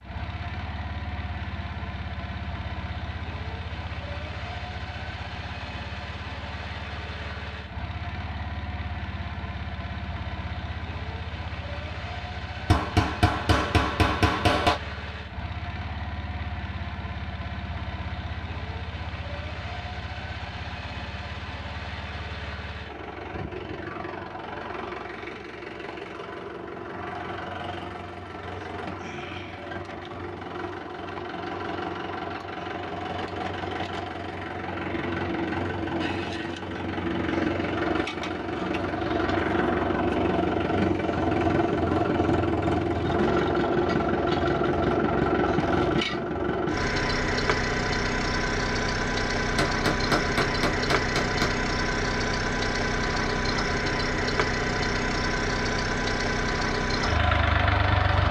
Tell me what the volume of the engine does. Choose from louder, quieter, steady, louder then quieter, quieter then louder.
louder.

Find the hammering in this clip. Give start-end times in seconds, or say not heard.
12.7-14.8, 49.5-51.5.